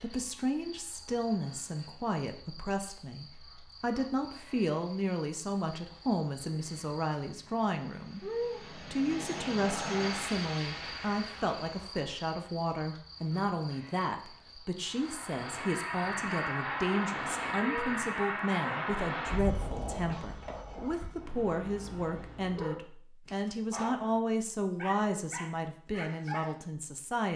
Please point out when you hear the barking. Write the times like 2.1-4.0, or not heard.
18.6-26.5.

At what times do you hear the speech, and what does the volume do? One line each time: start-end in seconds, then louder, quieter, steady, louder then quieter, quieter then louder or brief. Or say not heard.
0.0-27.3 steady.